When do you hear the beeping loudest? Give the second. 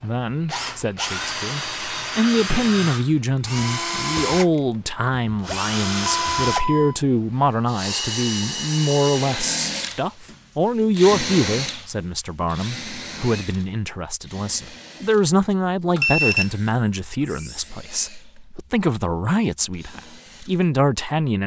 16 s.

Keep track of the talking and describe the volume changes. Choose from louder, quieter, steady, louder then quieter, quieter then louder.
steady.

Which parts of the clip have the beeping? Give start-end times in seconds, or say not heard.
6.0-7.0, 15.9-17.7.